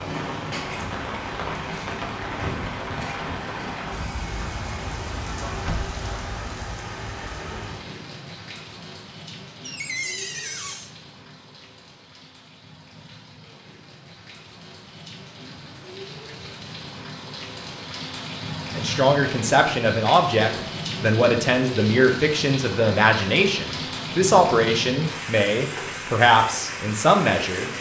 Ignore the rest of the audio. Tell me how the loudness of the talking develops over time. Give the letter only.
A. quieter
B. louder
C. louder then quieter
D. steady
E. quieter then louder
D.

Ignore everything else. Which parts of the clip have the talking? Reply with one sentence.
You can hear the talking from 18.8 to 27.7 s.